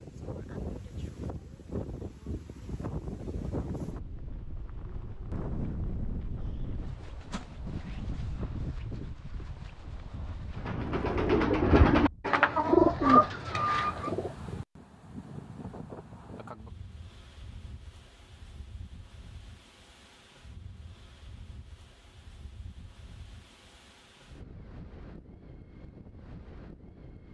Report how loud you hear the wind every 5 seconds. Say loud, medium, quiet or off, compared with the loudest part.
loud, loud, loud, medium, quiet, medium.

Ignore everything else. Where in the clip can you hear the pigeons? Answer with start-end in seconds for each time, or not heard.
10.6-14.3.